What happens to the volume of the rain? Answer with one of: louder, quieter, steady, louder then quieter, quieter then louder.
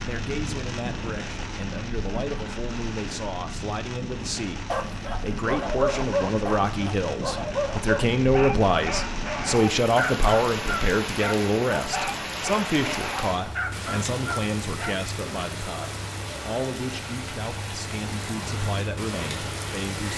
steady.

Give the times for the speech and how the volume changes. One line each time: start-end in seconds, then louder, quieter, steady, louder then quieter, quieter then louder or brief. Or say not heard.
0.1-20.1 louder then quieter.